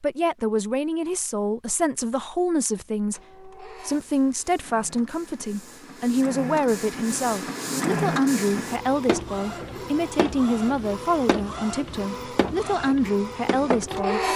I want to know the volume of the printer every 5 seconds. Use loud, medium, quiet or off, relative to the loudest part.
quiet, loud, loud.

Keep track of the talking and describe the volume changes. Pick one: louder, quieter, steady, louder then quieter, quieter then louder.
steady.